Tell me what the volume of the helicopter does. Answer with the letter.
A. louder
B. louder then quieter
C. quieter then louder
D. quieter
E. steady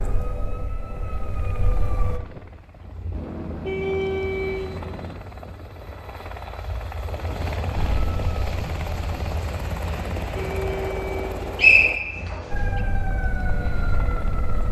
B.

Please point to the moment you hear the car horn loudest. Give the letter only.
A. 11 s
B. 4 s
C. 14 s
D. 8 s
B.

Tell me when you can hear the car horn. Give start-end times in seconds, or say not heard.
3.1-5.2, 9.8-11.8.